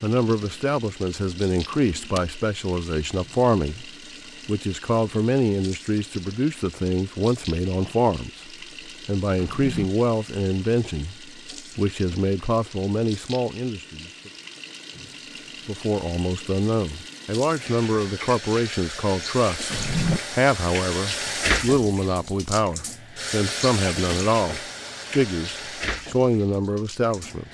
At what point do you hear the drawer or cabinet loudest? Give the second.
20 s.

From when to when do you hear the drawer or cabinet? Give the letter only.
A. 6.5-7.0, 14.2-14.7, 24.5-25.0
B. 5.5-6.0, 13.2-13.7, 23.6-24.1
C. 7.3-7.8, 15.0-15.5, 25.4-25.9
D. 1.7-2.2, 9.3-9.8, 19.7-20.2
D.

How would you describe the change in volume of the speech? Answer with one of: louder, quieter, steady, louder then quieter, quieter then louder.
steady.